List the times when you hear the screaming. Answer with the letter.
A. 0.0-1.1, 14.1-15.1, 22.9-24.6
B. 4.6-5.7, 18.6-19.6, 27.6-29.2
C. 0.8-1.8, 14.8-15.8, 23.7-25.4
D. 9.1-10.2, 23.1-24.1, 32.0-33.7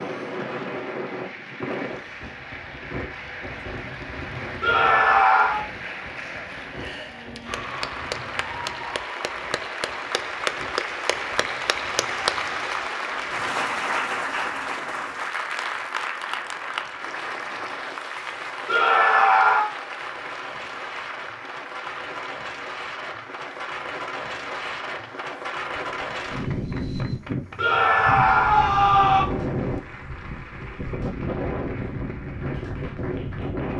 B.